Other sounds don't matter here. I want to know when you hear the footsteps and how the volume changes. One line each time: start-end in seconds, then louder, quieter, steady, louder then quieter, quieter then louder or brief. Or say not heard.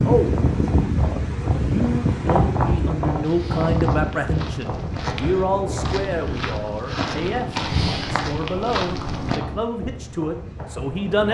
3.2-9.4 louder.